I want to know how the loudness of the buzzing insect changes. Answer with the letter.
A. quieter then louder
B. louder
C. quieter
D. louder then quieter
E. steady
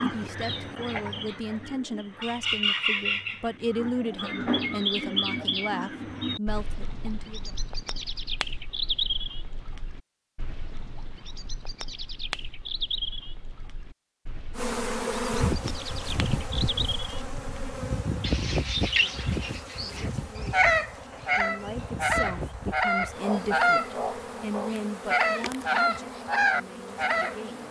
C.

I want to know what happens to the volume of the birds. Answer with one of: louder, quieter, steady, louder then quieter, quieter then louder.
quieter then louder.